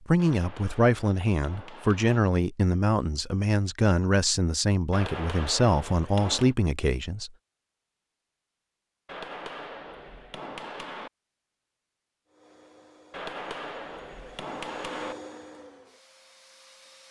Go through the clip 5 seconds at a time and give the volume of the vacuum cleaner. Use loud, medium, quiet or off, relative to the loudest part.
off, off, loud, loud.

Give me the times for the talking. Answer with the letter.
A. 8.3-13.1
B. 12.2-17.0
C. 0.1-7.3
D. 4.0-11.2
C.